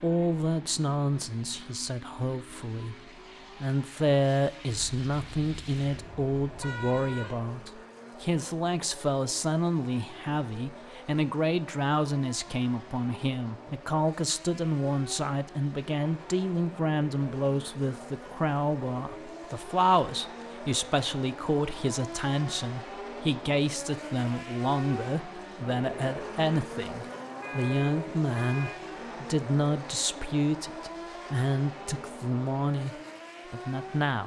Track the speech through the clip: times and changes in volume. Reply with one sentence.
The speech can be heard from 0.0 to 34.2 s, at a steady volume.